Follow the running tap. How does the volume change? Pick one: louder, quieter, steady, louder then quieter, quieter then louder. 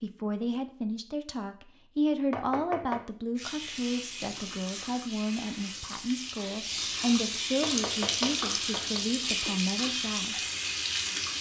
louder.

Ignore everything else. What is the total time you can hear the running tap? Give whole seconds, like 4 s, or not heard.
8 s.